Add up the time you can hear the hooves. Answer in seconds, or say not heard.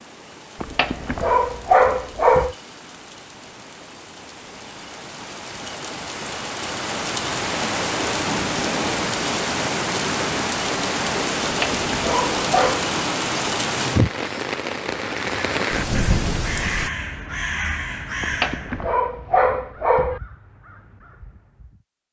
not heard.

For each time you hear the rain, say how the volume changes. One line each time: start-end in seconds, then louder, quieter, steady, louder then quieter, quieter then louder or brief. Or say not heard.
0.0-16.9 louder.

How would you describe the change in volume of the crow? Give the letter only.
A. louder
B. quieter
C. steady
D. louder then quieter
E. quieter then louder
B.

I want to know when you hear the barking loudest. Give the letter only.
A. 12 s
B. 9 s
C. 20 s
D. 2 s
D.